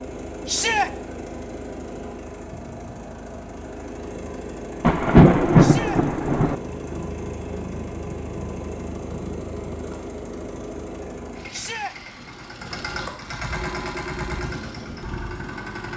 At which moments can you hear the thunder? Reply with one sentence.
You can hear the thunder from 4.8 to 6.5 s.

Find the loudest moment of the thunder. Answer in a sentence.
The volume of the thunder peaks at 5 seconds.